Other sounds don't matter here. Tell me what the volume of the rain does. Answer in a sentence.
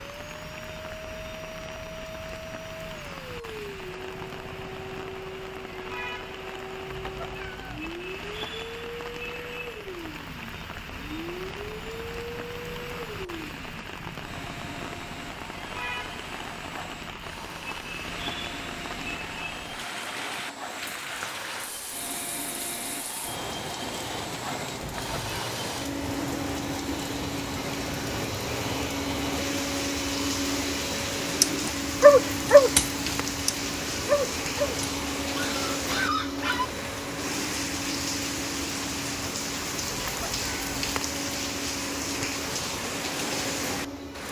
The volume of the rain goes up.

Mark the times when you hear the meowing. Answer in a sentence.
You can hear the meowing from 6.8 to 7.9 s, from 24.8 to 25.3 s and from 39.9 to 41.0 s.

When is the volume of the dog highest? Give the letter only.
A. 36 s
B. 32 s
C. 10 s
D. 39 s
B.